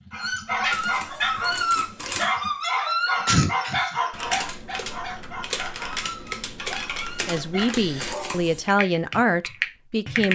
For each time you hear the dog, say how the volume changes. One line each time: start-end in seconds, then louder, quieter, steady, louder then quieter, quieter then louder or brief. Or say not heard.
0.1-8.4 quieter.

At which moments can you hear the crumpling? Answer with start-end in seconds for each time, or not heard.
0.7-2.3, 8.0-8.7.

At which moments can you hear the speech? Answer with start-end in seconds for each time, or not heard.
7.2-10.3.